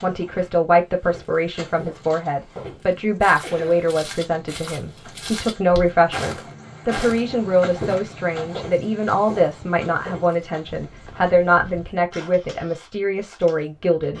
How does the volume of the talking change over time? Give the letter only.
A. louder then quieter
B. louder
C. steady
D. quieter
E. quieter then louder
C.